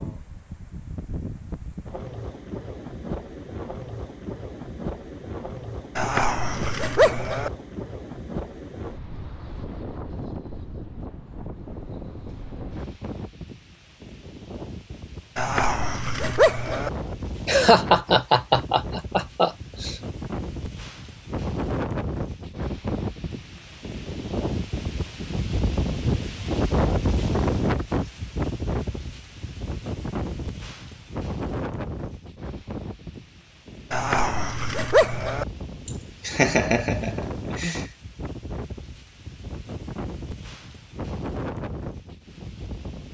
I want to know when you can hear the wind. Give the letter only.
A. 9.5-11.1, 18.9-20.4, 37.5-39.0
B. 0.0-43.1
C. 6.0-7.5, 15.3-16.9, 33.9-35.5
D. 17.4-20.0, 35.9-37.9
B.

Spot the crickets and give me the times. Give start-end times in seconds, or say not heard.
not heard.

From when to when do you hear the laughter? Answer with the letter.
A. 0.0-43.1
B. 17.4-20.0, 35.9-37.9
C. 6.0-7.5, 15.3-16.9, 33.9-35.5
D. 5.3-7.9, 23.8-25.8
B.